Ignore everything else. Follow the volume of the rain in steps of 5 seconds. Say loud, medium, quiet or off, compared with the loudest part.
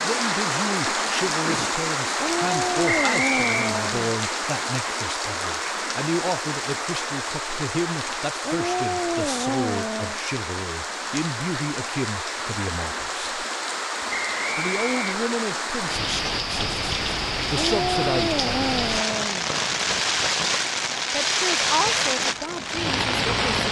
loud, medium, medium, loud, loud.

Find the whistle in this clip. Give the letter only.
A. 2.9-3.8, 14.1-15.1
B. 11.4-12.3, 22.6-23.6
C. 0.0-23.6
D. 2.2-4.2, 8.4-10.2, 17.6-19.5
A.